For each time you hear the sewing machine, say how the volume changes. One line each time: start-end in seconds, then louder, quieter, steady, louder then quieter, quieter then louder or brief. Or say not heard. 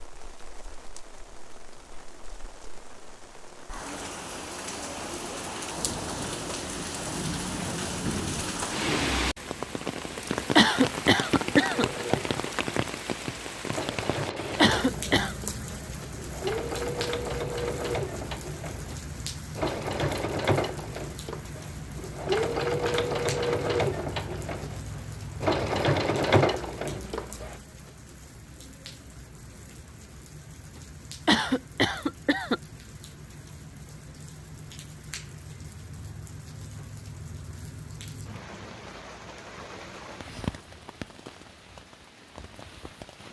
11.7-27.6 louder.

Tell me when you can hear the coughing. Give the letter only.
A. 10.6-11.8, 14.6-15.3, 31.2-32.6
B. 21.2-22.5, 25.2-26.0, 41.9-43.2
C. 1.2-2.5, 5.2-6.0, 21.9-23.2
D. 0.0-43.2
A.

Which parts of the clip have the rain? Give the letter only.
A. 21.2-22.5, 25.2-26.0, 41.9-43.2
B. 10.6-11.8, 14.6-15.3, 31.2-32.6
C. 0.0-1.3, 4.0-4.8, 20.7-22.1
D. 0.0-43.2
D.